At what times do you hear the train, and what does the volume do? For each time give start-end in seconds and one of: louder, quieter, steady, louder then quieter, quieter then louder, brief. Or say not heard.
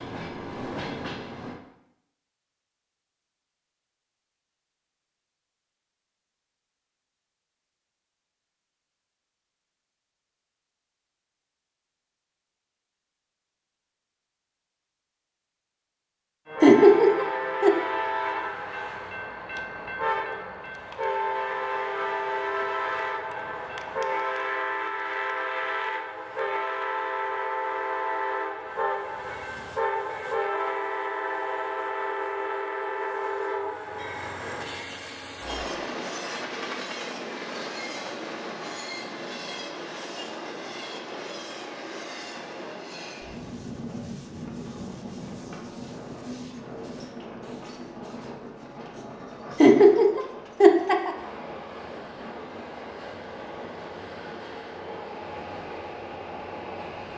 0.0-1.6 brief
16.4-57.1 quieter.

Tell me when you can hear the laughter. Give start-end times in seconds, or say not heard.
16.6-17.8, 49.6-51.1.